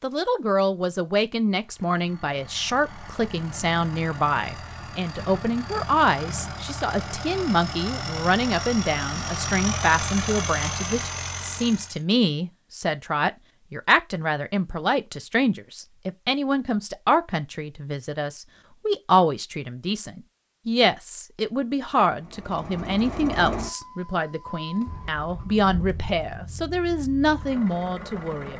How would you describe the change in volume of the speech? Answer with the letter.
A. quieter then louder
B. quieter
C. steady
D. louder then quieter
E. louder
C.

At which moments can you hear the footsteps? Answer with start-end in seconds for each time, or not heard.
not heard.